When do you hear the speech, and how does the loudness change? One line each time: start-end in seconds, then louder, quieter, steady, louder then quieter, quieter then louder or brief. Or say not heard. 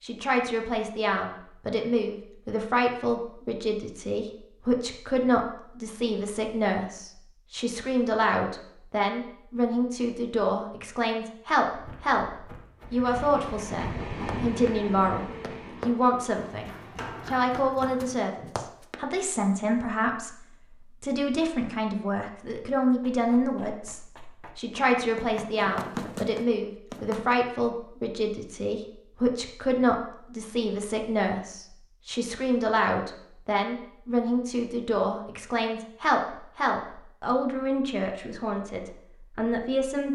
0.0-40.1 steady.